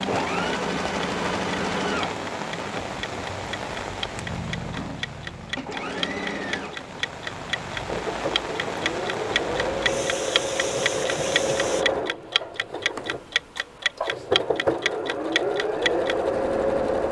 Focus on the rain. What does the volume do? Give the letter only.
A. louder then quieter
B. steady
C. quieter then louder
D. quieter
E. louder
C.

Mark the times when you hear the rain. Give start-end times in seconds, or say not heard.
0.0-11.8.